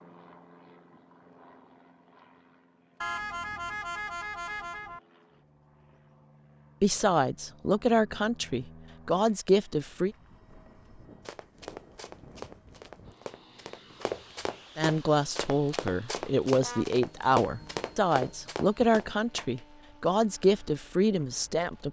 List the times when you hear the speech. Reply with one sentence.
You can hear the speech from 6.8 to 10.2 s and from 14.8 to 21.8 s.